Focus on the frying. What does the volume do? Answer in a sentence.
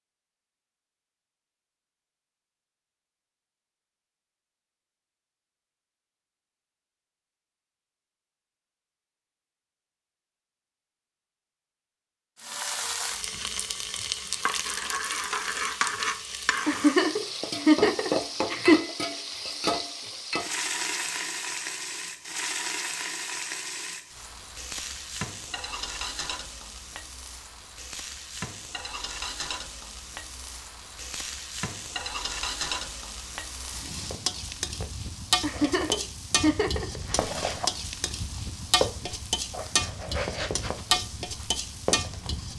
The volume of the frying goes down, then up.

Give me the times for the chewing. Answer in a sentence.
The chewing can't be heard in this clip.